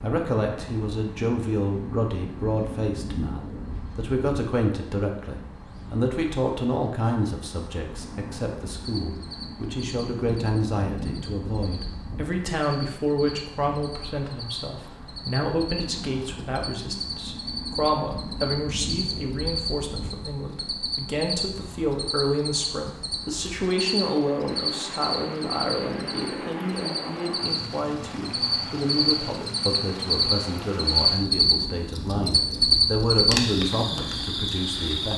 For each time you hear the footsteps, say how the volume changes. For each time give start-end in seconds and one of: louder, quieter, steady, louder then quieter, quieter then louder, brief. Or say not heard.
not heard.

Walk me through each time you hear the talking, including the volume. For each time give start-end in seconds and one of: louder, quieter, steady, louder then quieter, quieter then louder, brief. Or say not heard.
0.0-35.1 steady.